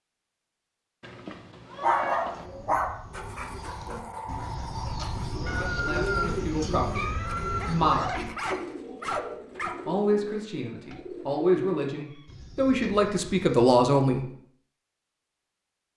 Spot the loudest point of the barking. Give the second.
2 s.